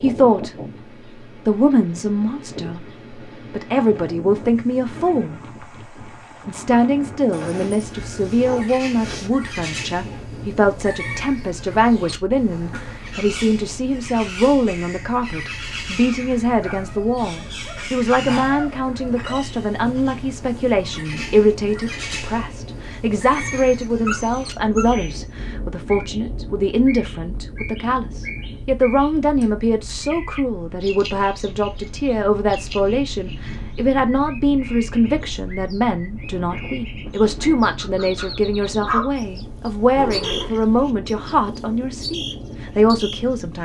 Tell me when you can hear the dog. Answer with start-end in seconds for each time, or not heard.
7.3-9.3, 16.6-19.2, 23.4-25.1, 37.6-39.1.